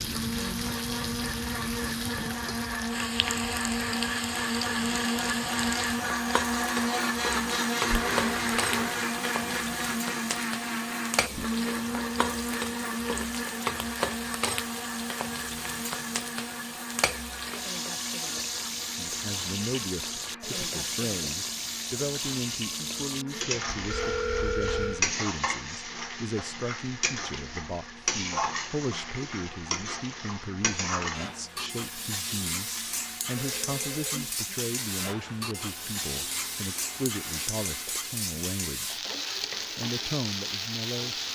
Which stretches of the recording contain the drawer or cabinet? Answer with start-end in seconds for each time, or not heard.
not heard.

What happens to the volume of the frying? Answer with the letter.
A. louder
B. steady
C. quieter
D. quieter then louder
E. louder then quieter
B.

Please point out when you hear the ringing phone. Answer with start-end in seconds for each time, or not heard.
7.9-9.1, 23.8-25.1, 33.4-34.4.